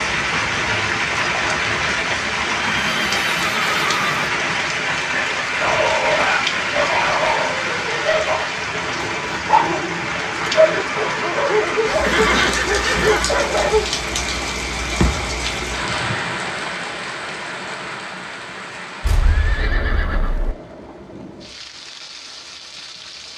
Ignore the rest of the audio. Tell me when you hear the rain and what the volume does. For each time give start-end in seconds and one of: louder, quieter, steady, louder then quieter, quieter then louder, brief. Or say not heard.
0.0-23.3 quieter.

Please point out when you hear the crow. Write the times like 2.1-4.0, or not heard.
not heard.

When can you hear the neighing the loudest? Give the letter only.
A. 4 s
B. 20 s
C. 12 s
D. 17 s
C.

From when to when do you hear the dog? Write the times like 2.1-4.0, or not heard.
5.1-14.1.